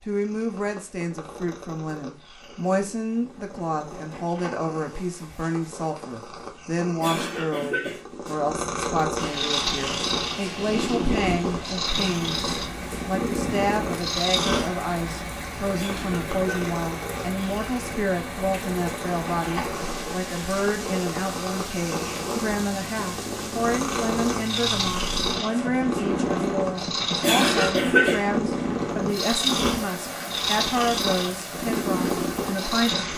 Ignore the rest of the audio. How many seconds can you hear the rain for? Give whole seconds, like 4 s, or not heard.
24 s.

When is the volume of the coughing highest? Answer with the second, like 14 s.
28 s.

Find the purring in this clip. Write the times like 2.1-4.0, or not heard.
0.1-33.1.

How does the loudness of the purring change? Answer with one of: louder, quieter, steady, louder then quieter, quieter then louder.
louder.